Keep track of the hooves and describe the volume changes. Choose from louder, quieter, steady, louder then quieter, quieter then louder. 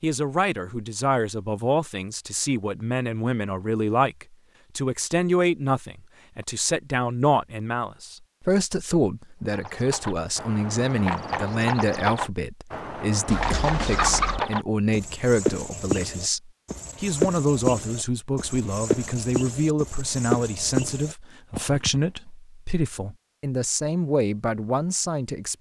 steady.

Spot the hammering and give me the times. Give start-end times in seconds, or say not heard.
not heard.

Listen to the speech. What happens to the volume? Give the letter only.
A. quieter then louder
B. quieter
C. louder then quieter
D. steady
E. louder
D.